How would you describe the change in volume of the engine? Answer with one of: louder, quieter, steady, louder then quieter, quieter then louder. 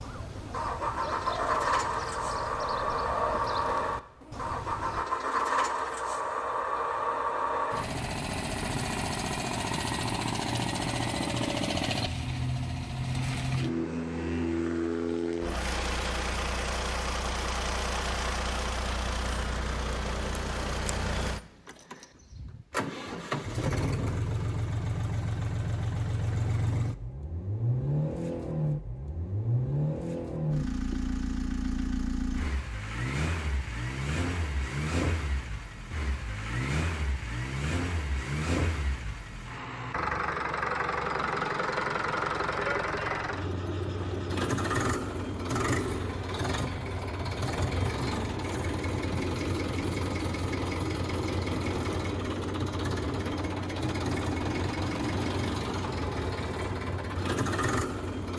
steady.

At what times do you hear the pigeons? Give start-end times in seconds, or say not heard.
0.0-5.0.